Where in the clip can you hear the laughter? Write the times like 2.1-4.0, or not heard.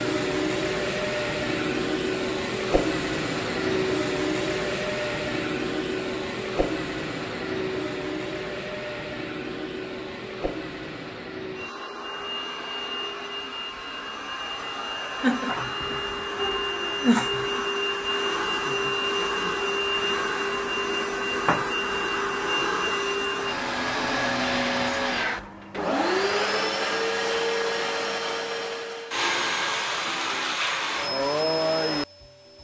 15.2-17.6.